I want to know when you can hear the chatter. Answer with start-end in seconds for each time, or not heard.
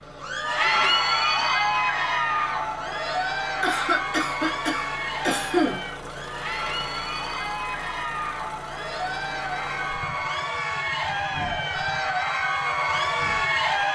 0.1-13.9.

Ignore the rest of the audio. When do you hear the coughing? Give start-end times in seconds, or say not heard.
3.6-5.8.